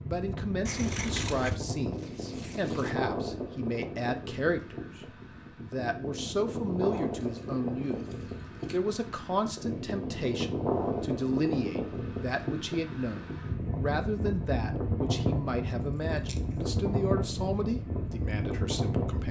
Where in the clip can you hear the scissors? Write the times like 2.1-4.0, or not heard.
0.7-1.6, 6.8-8.8, 15.8-16.6.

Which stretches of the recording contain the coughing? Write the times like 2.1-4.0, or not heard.
not heard.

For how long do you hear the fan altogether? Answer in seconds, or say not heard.
19 s.